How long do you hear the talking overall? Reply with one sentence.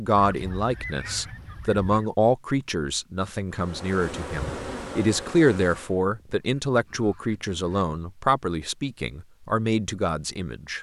You can hear the talking for 11 seconds altogether.